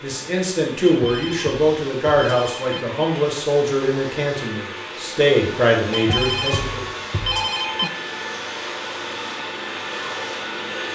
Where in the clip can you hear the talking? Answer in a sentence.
The talking can be heard from 0.0 to 6.8 s.